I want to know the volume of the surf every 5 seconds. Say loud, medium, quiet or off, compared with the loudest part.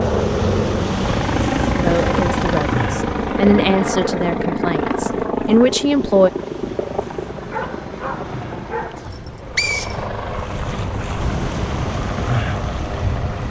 loud, quiet, loud.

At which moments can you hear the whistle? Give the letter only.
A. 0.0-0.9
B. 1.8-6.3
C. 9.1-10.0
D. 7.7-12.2
C.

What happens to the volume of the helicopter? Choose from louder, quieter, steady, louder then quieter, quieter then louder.
quieter.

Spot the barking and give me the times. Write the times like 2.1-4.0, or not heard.
7.4-9.0.